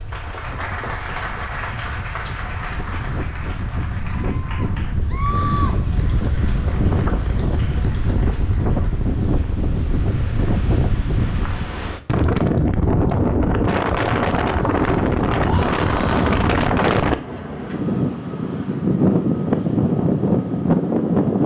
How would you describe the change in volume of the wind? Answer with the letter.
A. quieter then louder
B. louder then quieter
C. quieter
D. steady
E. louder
E.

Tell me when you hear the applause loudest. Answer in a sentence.
The volume of the applause peaks at 1 second.